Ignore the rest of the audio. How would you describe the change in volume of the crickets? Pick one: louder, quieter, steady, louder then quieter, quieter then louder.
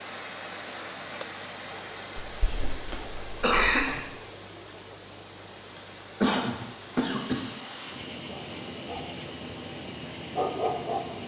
quieter.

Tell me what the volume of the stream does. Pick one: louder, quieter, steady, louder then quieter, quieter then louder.
quieter then louder.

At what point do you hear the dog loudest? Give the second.
11 s.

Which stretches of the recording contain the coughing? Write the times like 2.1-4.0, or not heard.
2.2-4.0, 6.2-7.4.